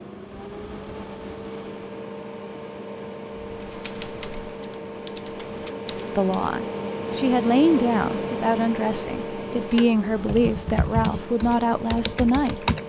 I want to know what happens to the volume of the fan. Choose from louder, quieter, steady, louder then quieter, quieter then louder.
louder then quieter.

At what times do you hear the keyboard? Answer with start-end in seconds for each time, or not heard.
3.4-6.5, 10.2-12.8.